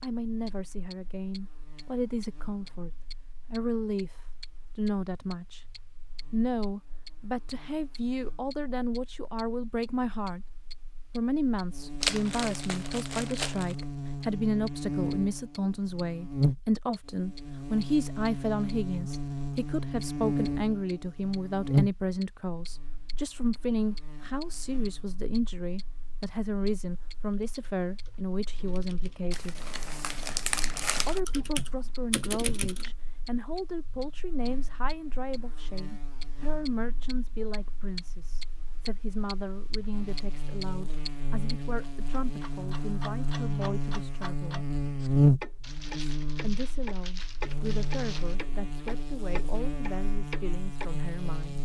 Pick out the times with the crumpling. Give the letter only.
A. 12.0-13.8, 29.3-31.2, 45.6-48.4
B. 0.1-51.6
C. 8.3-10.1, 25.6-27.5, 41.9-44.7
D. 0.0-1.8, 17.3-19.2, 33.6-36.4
A.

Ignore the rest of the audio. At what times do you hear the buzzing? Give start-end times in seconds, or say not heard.
0.1-51.6.